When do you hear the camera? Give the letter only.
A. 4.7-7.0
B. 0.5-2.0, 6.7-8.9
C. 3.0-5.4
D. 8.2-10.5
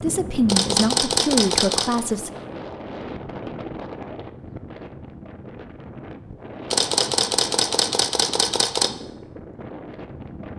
B.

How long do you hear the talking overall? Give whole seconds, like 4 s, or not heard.
2 s.